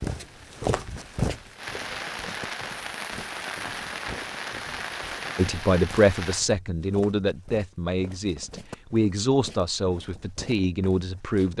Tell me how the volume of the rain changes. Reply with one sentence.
The volume of the rain goes up.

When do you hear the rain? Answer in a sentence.
The rain can be heard from 0.0 to 6.5 s.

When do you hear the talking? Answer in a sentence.
You can hear the talking from 5.3 to 11.5 s.